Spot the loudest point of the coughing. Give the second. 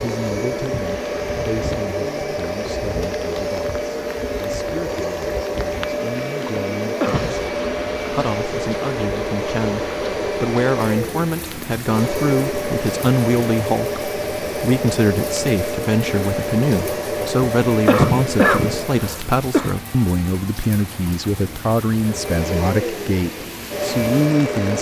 18 s.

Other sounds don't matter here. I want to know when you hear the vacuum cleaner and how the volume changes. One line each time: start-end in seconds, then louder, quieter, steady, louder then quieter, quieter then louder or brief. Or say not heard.
0.0-19.2 steady
21.9-24.7 brief.